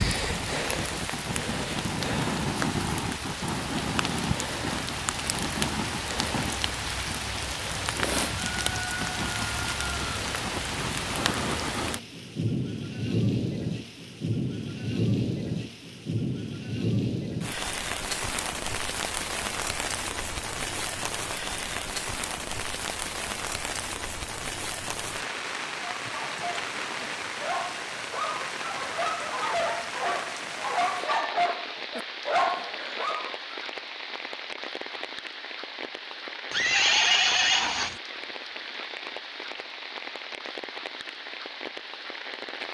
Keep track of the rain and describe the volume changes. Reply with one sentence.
The loudness of the rain goes down.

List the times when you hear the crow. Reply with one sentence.
The crow can't be heard in this clip.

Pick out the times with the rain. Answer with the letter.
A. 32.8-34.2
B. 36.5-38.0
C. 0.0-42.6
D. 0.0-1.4
C.